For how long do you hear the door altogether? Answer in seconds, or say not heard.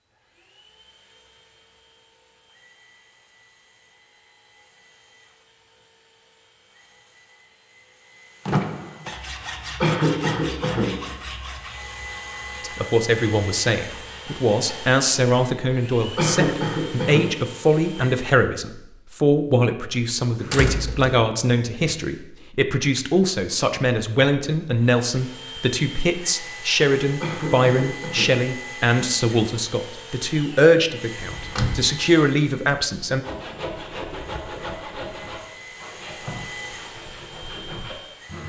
2 s.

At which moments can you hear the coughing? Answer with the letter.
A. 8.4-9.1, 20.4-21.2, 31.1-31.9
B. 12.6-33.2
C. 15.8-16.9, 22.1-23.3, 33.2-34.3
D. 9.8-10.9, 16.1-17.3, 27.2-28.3
D.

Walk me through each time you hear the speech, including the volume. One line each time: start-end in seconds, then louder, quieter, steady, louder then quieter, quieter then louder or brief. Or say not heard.
12.6-33.2 steady.